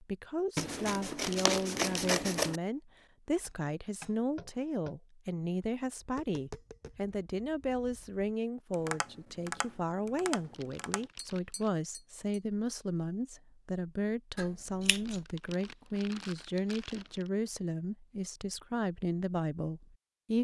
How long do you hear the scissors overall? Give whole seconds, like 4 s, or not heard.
3 s.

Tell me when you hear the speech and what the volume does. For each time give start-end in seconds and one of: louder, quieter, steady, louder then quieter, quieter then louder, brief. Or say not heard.
0.0-20.3 steady.